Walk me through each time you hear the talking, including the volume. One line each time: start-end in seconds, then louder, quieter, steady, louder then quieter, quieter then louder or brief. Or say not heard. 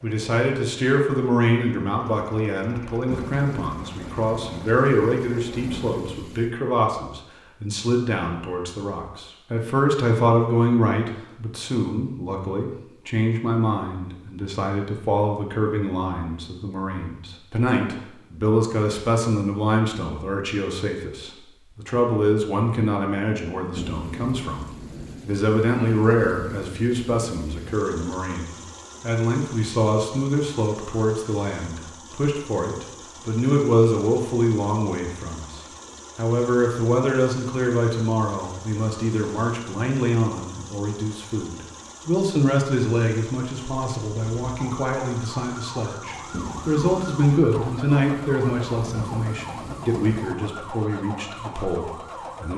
0.0-52.5 steady.